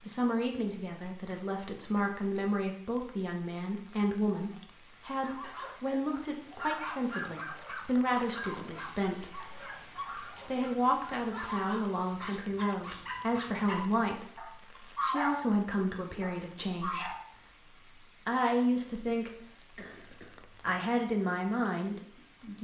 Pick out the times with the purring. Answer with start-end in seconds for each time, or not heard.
not heard.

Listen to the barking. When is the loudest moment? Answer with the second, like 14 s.
15 s.